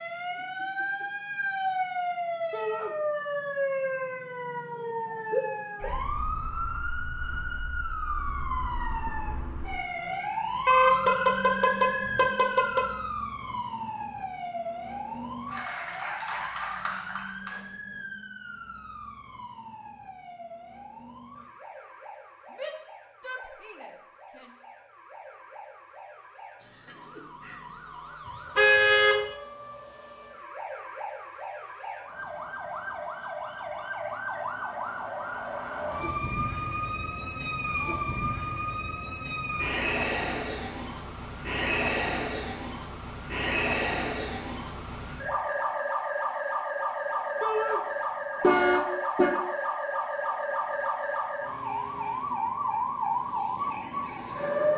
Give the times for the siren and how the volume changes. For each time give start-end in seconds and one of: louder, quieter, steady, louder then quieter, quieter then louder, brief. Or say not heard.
0.0-54.7 quieter then louder.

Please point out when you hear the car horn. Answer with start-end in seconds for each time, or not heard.
10.7-12.8, 28.6-29.2, 48.4-49.3.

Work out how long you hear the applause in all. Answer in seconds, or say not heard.
2 s.